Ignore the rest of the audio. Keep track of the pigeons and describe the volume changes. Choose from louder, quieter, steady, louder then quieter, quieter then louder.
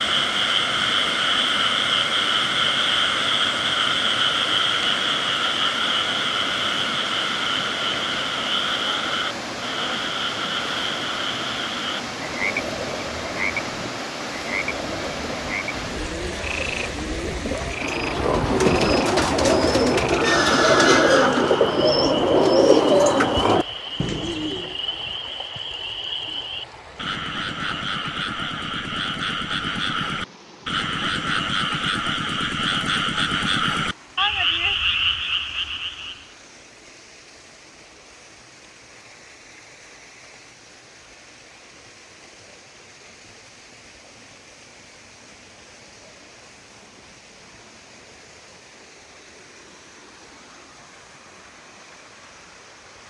louder.